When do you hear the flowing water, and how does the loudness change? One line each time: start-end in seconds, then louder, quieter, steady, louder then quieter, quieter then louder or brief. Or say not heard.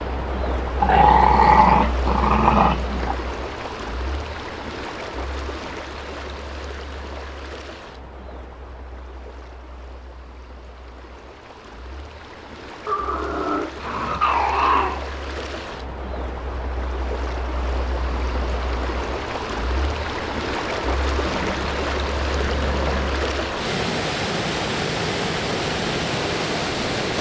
0.0-27.1 quieter then louder.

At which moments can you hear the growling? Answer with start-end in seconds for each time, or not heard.
0.8-3.1, 12.8-15.1, 21.2-23.2.